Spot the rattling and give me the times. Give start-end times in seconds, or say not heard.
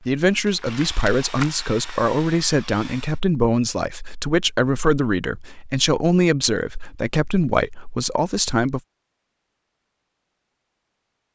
0.6-1.5.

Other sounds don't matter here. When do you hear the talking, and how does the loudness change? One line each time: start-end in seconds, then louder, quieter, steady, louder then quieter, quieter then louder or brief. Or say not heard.
0.1-8.8 steady.